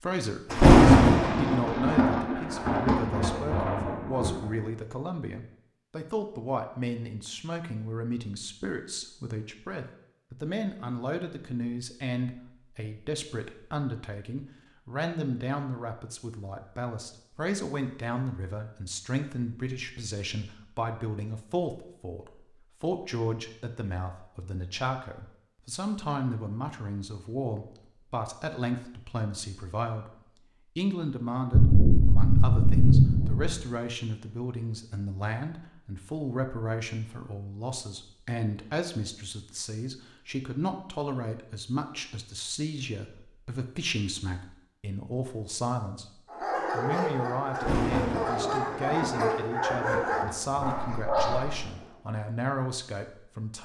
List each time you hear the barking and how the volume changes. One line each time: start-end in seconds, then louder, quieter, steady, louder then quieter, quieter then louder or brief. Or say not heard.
46.3-52.1 steady.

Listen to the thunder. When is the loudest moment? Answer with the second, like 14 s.
1 s.